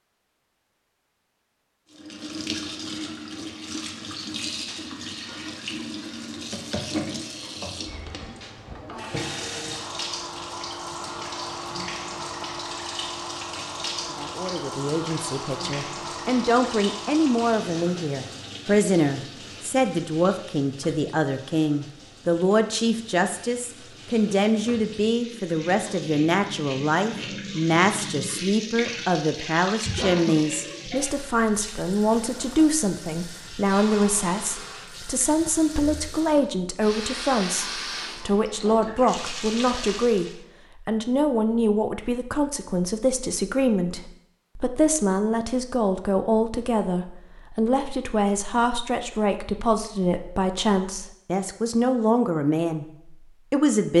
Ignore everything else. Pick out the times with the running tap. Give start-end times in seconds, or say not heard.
1.9-40.4.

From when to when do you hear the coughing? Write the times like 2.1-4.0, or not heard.
not heard.